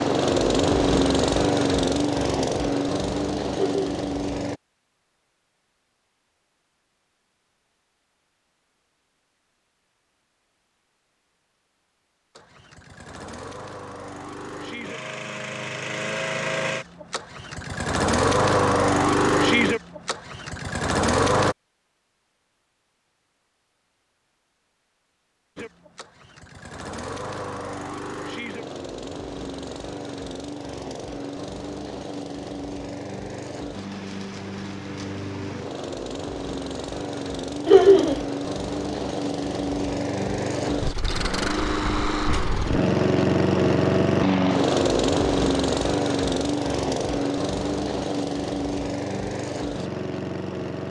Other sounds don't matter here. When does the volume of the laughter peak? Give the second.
38 s.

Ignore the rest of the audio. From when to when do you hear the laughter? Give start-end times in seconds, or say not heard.
3.5-4.0, 37.6-38.2.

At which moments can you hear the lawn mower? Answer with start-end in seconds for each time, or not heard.
0.0-4.6, 12.3-21.6, 25.6-50.8.